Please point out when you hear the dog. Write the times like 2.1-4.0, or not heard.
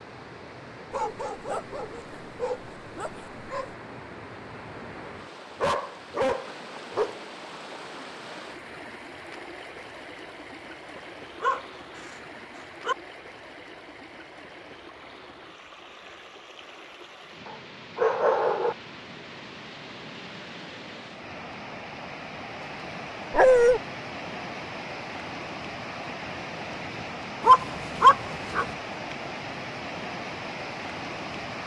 0.9-3.8, 5.4-7.2, 10.9-12.9, 17.4-18.8, 23.3-23.8, 27.4-28.7.